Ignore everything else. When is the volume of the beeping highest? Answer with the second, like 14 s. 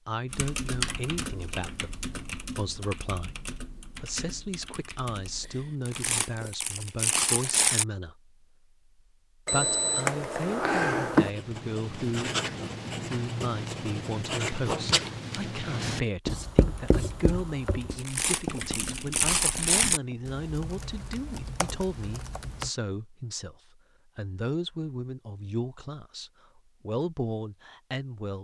11 s.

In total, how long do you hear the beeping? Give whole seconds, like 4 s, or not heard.
2 s.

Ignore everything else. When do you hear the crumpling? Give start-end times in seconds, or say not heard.
5.8-7.8, 17.9-20.0.